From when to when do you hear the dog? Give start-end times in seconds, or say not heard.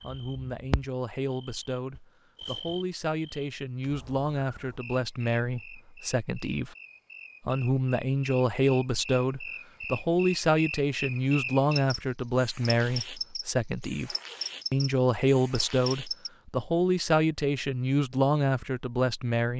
not heard.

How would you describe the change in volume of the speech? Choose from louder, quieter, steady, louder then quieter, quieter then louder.
louder.